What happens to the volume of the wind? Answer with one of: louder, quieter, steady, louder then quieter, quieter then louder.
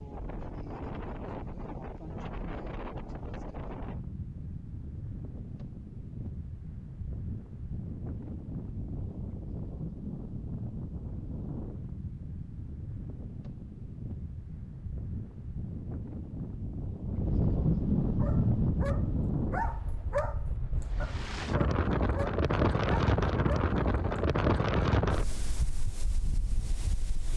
louder.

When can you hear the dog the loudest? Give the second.
20 s.